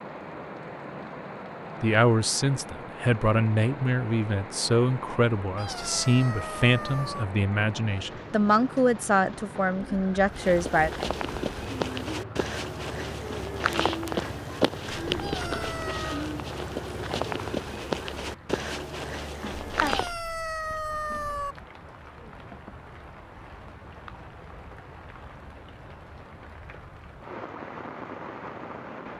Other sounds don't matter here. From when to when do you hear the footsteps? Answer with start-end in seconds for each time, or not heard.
10.2-20.1.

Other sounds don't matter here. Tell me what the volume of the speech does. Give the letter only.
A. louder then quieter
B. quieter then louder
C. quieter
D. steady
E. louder
D.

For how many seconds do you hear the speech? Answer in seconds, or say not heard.
9 s.